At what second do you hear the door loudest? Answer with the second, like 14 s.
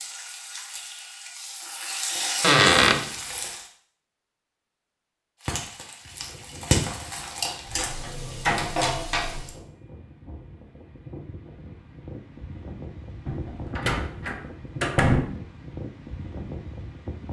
3 s.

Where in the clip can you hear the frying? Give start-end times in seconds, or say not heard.
0.0-3.7, 5.4-9.6.